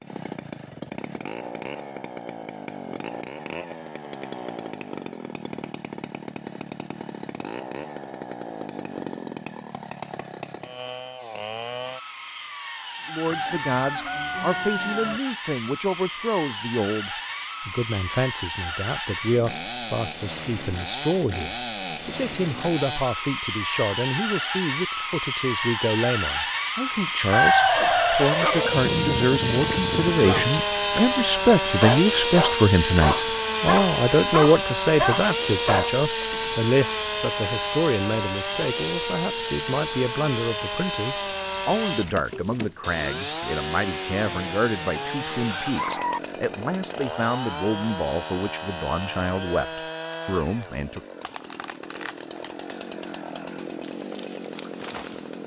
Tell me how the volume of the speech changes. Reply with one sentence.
The volume of the speech goes up, then down.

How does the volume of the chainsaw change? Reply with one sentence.
The loudness of the chainsaw goes up, then down.